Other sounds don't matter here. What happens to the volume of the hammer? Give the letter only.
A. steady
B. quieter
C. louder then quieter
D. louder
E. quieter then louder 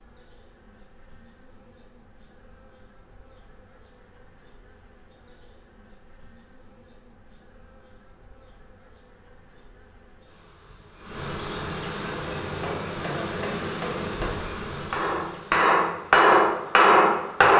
D.